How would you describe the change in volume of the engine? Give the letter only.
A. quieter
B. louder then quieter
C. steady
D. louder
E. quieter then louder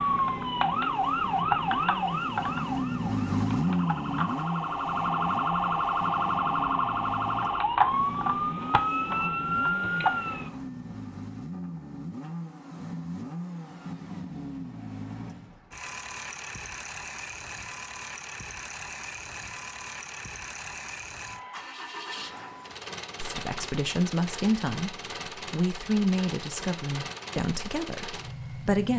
A.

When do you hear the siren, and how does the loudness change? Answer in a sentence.
You can hear the siren from 0.0 to 10.5 s, getting quieter then louder.